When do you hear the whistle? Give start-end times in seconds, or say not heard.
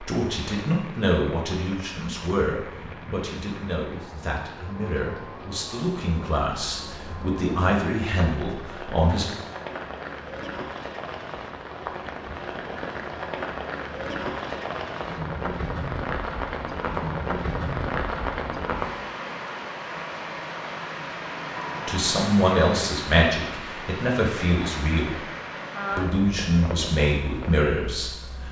not heard.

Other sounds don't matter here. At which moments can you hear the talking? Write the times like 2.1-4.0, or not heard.
0.0-9.2, 21.9-25.2, 25.9-28.4.